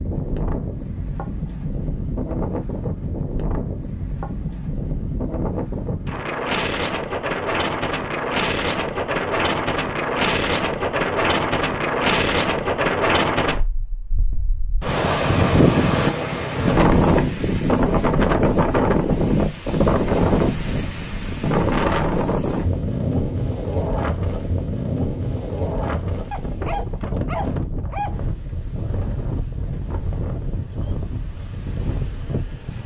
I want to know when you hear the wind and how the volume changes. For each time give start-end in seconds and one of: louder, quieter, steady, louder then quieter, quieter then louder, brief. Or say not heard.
0.0-32.8 louder then quieter.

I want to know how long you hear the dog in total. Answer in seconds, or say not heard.
2 s.